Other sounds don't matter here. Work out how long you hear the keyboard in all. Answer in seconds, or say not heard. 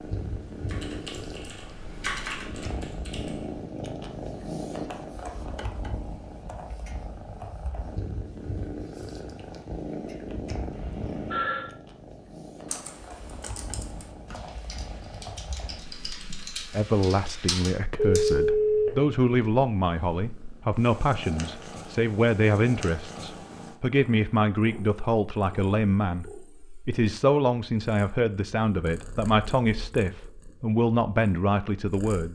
9 s.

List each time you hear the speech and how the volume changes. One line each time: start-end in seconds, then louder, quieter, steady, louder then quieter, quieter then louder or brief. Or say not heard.
16.7-32.3 steady.